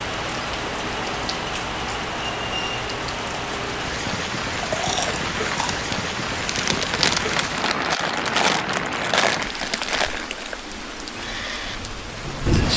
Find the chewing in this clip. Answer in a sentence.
You can hear the chewing from 4.5 to 10.6 s.